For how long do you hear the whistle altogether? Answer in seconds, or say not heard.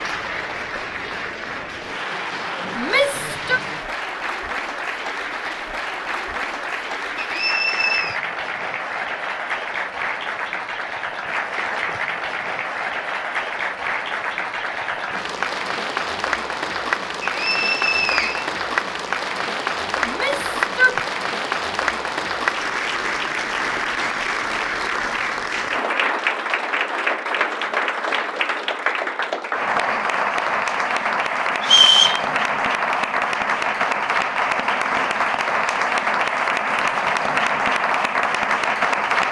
3 s.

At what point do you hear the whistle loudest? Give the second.
32 s.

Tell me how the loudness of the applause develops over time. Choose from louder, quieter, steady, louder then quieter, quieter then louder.
louder.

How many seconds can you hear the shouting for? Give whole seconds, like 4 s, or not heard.
2 s.